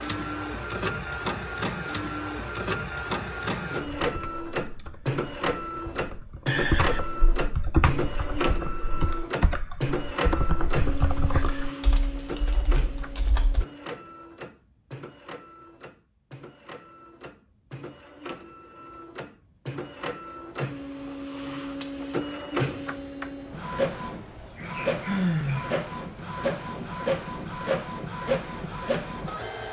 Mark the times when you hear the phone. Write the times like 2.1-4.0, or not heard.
not heard.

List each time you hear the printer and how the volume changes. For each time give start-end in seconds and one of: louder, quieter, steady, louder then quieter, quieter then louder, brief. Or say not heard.
0.0-29.6 quieter then louder.